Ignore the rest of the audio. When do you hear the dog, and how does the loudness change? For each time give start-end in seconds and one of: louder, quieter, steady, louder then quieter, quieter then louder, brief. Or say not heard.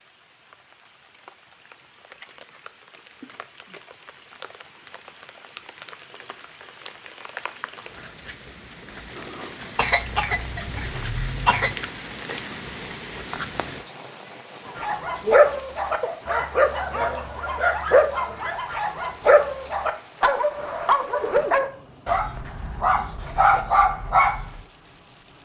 14.8-24.6 steady.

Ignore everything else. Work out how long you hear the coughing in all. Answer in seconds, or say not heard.
2 s.